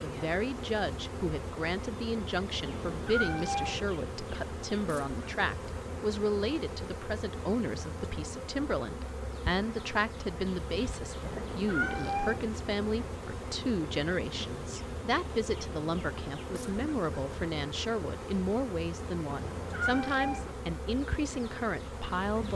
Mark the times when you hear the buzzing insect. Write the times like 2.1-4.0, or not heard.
0.0-22.5.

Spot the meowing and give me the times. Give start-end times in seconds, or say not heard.
2.6-3.9, 11.2-12.5, 19.2-20.6.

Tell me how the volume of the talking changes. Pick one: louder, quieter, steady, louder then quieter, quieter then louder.
steady.